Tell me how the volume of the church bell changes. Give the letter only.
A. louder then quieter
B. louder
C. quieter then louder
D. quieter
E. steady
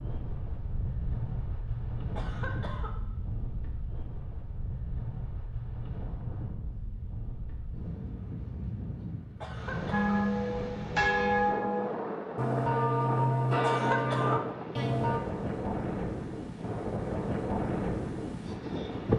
E.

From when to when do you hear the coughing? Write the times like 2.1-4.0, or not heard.
2.1-3.0, 9.4-10.2, 13.6-14.4.